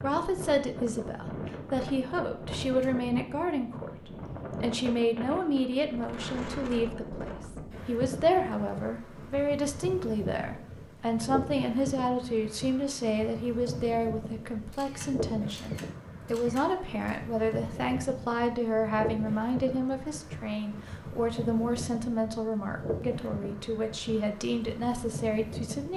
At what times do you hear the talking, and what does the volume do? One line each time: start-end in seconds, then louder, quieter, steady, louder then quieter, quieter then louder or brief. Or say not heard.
0.0-25.9 steady.